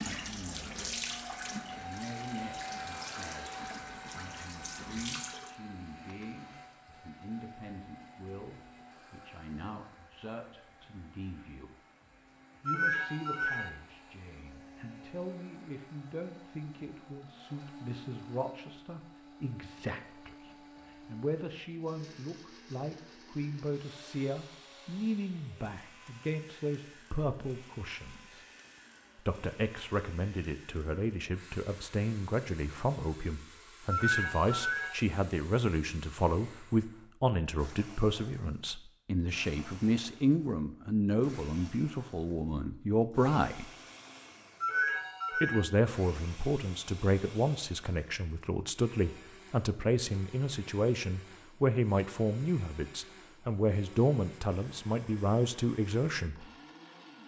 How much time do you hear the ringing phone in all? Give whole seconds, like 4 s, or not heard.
3 s.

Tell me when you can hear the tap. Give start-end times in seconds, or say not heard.
0.0-5.5.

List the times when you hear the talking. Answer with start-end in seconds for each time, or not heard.
0.0-1.1, 1.8-11.8, 12.6-28.4, 29.1-43.7, 45.4-56.5.